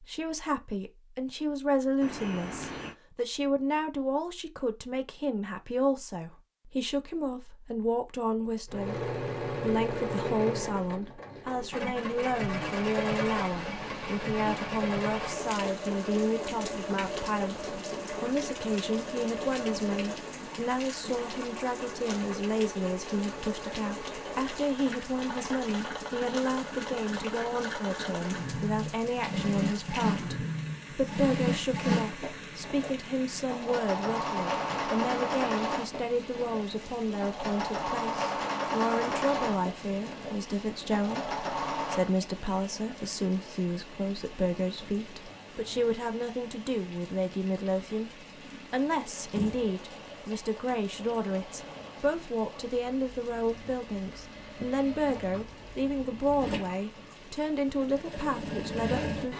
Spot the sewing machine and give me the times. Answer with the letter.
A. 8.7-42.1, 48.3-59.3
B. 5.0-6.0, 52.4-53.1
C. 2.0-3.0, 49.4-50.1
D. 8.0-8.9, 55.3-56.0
A.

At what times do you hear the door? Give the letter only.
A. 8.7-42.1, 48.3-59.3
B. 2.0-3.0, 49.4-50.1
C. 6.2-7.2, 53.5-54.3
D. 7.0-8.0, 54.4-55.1
B.